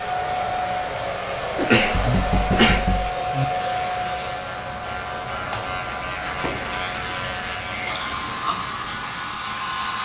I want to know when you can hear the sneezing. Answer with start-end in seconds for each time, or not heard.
1.6-2.9, 7.7-8.6.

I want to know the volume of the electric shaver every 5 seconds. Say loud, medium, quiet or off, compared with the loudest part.
medium, loud.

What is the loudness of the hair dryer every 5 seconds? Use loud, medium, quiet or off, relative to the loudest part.
loud, medium.